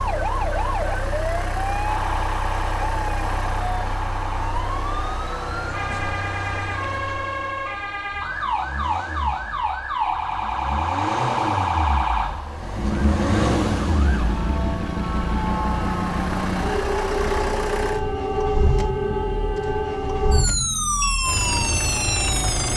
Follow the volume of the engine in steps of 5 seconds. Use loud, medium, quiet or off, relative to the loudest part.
loud, medium, loud, loud, loud.